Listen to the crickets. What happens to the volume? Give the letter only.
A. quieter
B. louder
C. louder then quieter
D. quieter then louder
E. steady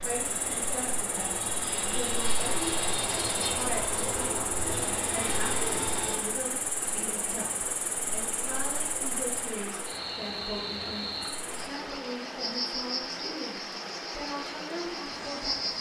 E.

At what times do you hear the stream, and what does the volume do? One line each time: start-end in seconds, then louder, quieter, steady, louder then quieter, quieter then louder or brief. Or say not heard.
0.0-15.7 steady.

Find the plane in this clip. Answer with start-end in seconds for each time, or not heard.
0.0-6.4.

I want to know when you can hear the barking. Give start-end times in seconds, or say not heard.
not heard.